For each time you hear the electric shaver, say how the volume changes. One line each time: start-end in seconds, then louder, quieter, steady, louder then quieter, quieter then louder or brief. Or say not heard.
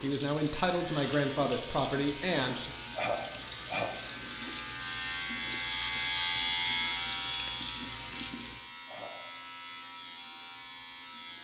0.0-11.3 louder then quieter.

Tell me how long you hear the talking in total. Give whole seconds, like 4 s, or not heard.
3 s.